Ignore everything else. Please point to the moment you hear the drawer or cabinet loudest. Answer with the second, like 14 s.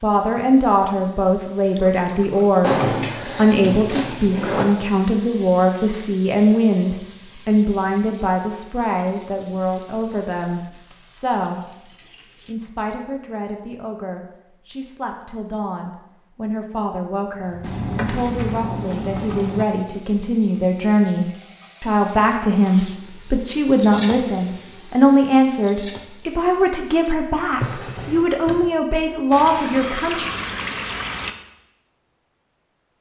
3 s.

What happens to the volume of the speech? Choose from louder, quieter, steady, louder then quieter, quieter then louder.
quieter then louder.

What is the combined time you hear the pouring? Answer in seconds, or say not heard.
5 s.